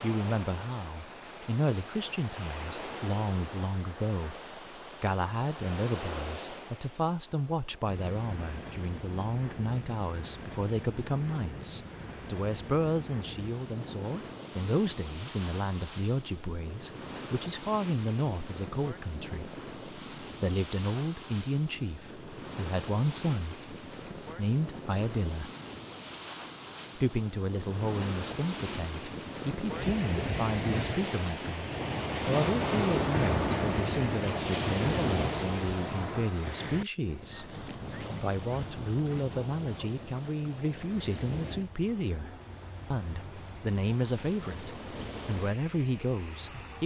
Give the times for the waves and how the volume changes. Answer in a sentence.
You can hear the waves from 0.0 to 46.8 s, getting louder then quieter.